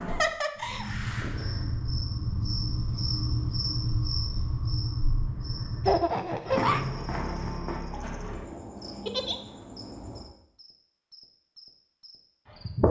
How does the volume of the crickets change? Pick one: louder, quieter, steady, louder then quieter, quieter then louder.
quieter.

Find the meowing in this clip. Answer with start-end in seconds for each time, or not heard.
not heard.